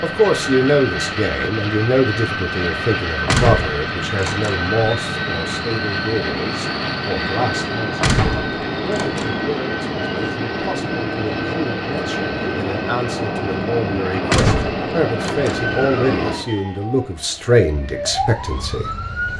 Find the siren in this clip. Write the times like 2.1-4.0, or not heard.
15.5-19.3.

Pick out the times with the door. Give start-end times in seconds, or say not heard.
3.2-4.7, 8.0-9.3, 14.2-15.7.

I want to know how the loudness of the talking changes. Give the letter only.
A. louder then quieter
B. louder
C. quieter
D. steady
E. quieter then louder
E.